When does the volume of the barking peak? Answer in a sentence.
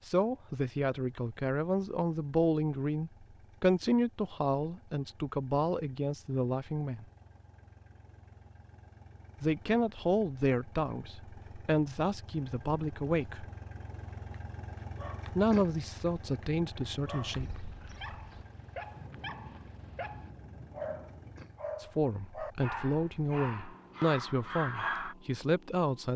The loudest moment of the barking is at 25 seconds.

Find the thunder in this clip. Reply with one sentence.
You can hear the thunder from 18.8 to 21.6 s.